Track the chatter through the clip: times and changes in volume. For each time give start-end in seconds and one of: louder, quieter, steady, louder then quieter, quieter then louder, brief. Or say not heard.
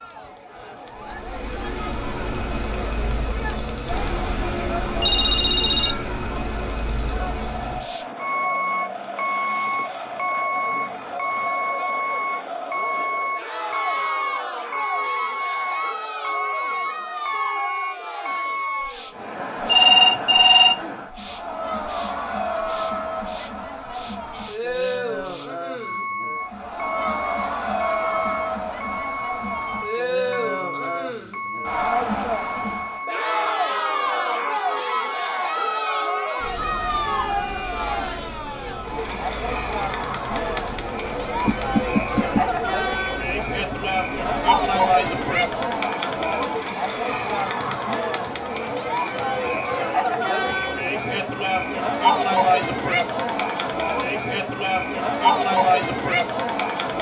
0.0-56.9 louder.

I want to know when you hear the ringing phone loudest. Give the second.
20 s.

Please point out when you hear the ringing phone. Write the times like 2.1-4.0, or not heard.
5.0-6.0, 19.6-20.8, 41.4-42.5.